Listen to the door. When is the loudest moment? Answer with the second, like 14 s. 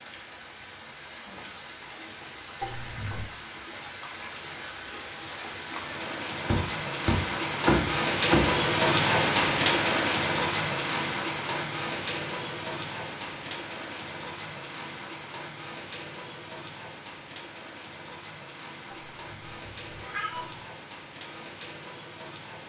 8 s.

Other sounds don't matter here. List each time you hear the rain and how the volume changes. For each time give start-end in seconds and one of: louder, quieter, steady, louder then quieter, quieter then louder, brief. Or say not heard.
0.0-22.6 louder then quieter.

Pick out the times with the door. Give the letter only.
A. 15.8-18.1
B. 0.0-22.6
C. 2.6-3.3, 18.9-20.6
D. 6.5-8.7
D.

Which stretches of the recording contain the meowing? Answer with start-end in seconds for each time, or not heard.
2.6-3.3, 18.9-20.6.